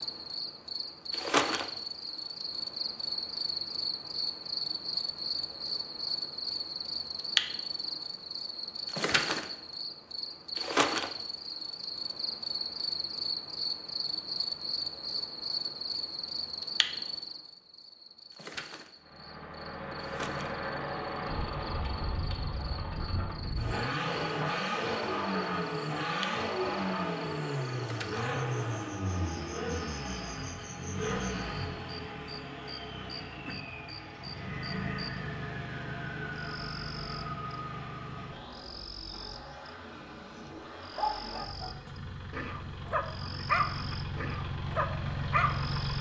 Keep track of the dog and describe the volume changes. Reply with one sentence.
The volume of the dog goes down, then up.